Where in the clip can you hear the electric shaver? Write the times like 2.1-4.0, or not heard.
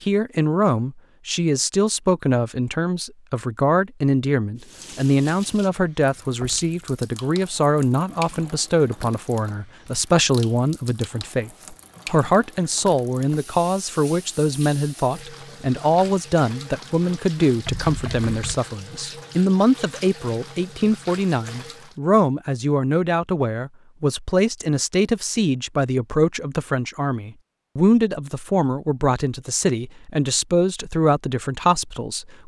not heard.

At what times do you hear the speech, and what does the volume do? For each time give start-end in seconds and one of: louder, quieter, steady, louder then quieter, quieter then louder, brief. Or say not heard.
0.0-32.4 steady.